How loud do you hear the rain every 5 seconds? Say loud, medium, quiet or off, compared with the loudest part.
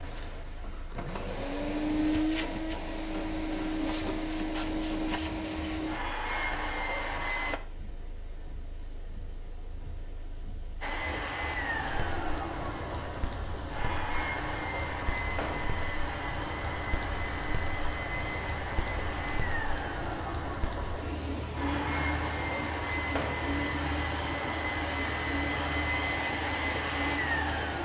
quiet, quiet, medium, loud, loud, loud.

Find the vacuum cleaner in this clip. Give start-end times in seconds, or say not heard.
0.0-7.6, 10.8-27.7.